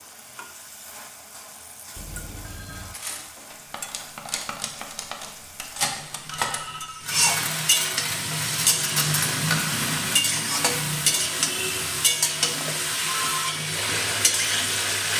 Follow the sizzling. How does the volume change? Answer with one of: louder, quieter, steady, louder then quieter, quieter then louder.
louder.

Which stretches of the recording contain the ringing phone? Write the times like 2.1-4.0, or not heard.
1.9-3.0, 6.3-7.1, 12.6-13.6.